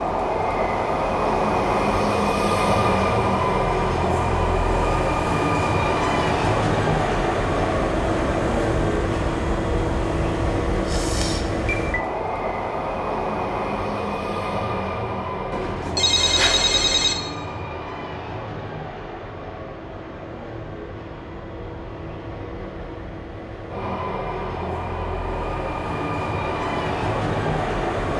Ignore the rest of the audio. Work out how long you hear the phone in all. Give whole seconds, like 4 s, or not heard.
3 s.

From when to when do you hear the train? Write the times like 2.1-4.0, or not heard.
0.0-28.1.